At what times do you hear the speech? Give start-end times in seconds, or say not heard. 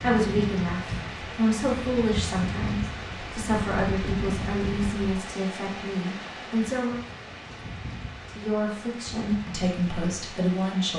0.0-7.0, 8.3-10.9.